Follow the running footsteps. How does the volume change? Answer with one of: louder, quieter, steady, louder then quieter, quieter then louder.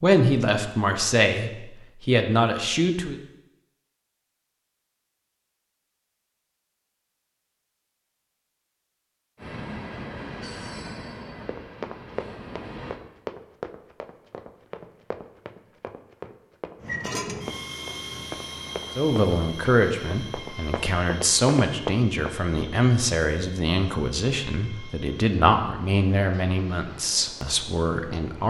quieter then louder.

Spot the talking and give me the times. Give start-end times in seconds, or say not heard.
0.0-3.1, 18.9-28.4.